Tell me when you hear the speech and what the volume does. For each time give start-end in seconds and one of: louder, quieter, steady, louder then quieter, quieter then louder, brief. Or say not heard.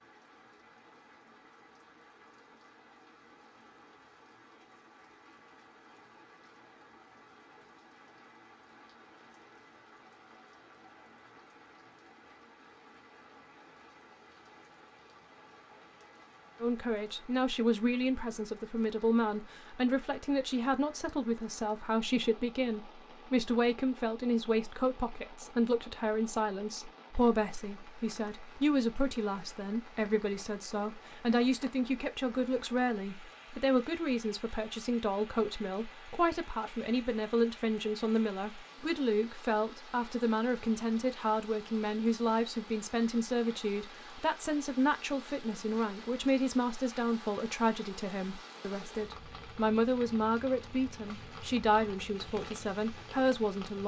16.6-53.8 steady.